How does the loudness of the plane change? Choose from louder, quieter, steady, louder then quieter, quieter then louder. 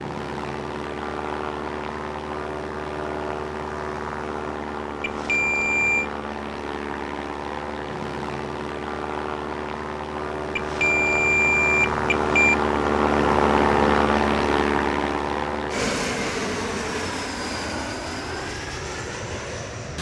louder then quieter.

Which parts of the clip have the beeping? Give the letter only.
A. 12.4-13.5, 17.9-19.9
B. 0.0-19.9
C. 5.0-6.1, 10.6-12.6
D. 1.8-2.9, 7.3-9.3
C.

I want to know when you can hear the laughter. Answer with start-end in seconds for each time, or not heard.
not heard.